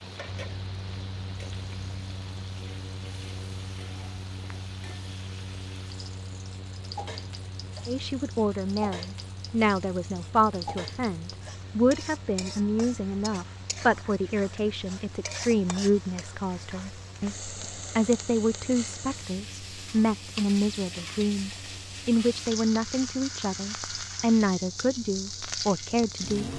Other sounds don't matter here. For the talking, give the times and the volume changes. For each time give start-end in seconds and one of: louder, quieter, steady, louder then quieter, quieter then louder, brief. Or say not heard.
7.8-26.5 steady.